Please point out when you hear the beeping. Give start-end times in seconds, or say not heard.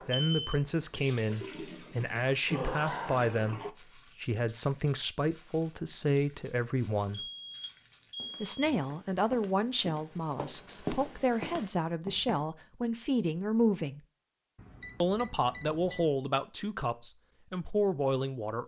0.1-0.6, 7.1-8.8, 14.6-16.1.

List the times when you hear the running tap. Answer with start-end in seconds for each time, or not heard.
0.0-3.7.